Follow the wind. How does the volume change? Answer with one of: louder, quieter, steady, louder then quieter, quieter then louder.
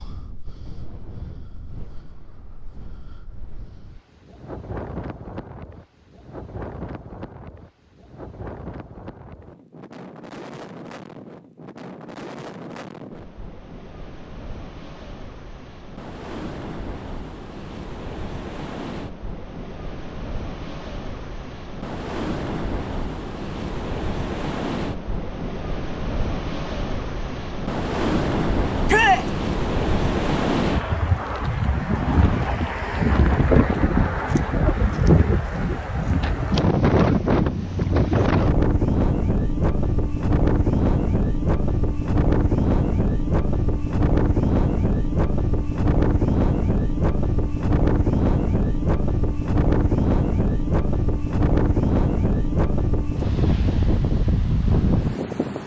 louder.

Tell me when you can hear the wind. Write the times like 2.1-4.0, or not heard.
0.0-55.6.